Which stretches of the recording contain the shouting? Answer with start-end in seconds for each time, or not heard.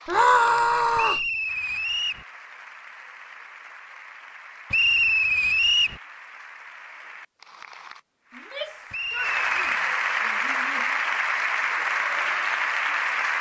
0.1-1.2, 8.3-11.0.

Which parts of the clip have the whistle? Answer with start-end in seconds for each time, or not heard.
0.9-2.2, 4.7-6.0, 8.9-9.8.